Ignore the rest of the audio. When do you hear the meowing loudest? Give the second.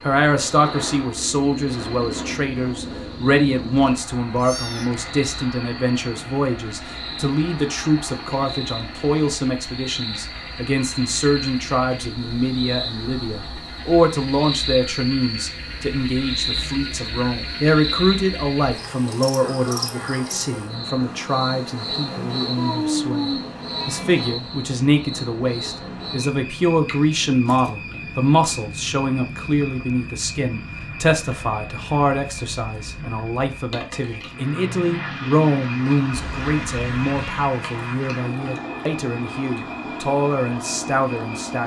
23 s.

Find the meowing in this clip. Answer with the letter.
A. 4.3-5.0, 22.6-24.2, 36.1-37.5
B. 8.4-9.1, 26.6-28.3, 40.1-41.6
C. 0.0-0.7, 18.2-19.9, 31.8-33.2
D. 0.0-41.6
A.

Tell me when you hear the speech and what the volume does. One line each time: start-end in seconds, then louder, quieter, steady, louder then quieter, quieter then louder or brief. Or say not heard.
0.0-41.6 steady.